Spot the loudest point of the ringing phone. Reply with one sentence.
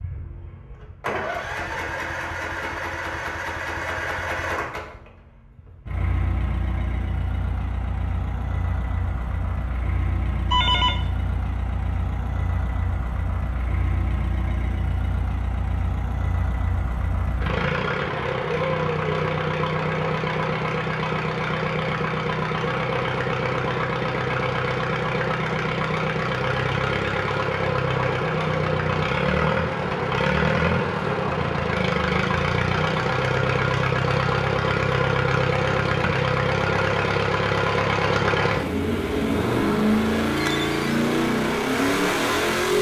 The volume of the ringing phone peaks at 11 seconds.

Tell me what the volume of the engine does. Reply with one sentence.
The loudness of the engine goes up.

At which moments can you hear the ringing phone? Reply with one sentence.
You can hear the ringing phone from 10.5 to 11.0 s and from 40.4 to 40.9 s.